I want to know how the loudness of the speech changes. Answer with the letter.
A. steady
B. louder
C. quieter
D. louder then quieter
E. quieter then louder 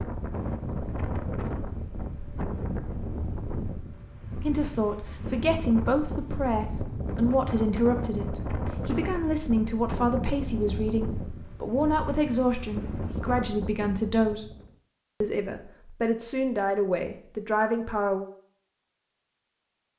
A.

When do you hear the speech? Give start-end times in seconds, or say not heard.
4.3-14.5, 15.2-18.2.